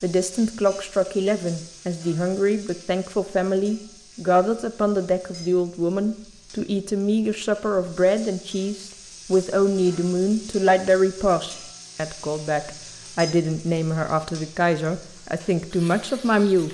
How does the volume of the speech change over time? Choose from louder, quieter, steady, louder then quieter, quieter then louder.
steady.